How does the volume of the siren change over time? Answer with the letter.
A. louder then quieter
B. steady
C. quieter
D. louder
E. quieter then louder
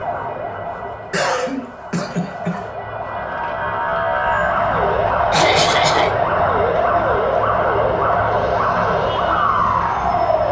D.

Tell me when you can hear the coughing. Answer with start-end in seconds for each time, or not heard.
1.1-2.6, 5.3-6.1.